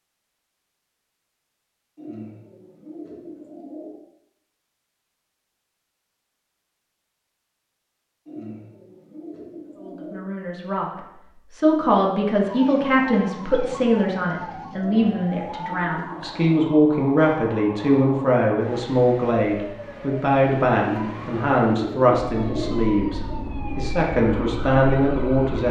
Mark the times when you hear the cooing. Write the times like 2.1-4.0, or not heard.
1.9-4.0, 8.2-10.2, 14.8-16.6, 20.8-22.8.